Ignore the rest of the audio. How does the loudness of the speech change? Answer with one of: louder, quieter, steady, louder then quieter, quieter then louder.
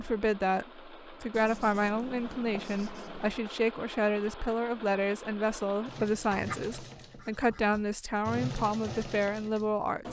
steady.